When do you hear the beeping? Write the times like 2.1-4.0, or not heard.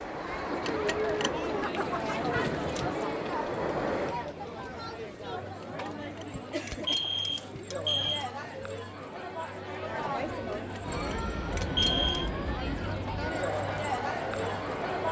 0.7-1.3, 5.6-8.2, 10.5-12.3.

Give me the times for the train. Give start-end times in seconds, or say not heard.
0.0-4.2, 10.8-15.0.